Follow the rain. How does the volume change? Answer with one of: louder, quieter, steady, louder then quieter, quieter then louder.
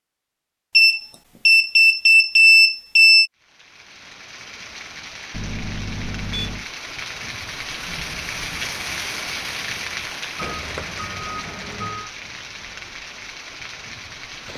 louder then quieter.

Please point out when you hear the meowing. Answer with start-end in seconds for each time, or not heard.
not heard.